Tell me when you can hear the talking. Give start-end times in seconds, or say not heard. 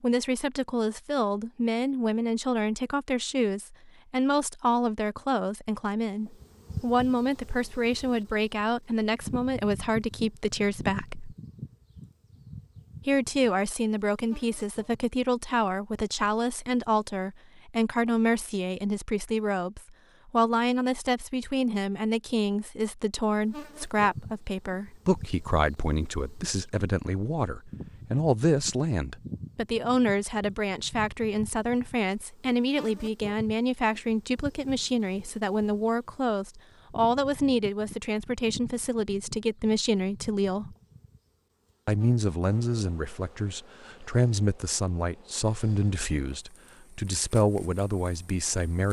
0.0-11.3, 13.1-40.8, 41.9-48.8.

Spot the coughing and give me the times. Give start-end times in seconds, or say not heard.
not heard.